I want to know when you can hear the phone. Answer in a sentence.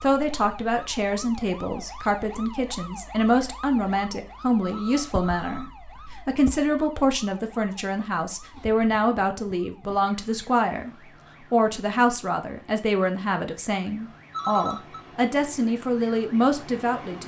You can hear the phone from 4.6 to 6.1 s and from 14.3 to 15.0 s.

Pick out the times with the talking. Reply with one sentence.
You can hear the talking from 0.0 to 5.7 s, from 6.2 to 10.9 s and from 11.5 to 17.2 s.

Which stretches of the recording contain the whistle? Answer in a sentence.
You can't hear the whistle here.